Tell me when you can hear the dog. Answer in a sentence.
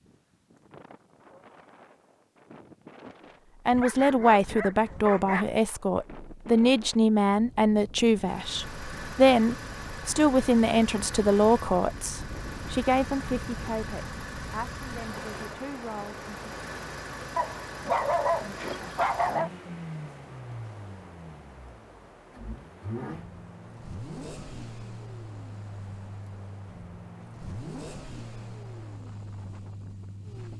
You can hear the dog from 3.7 to 5.5 s and from 17.4 to 19.5 s.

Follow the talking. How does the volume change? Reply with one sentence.
The volume of the talking goes down.